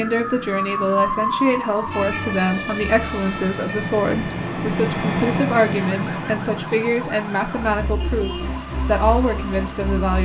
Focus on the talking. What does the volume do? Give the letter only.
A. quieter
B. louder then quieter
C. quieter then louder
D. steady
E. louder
D.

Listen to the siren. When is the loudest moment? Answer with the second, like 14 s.
1 s.